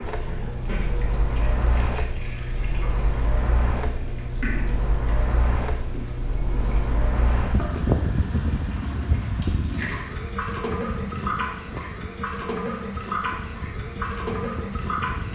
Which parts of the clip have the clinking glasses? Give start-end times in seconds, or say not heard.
not heard.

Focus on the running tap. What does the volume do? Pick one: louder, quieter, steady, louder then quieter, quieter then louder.
louder.